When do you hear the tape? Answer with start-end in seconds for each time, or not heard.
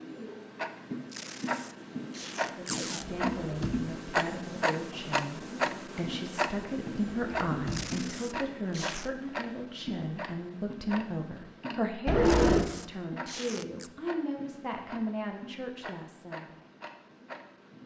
1.1-3.0, 7.7-9.1, 12.2-13.9.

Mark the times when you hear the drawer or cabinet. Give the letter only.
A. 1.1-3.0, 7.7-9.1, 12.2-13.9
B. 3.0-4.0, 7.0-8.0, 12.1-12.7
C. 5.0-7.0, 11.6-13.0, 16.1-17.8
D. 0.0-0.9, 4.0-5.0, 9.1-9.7
B.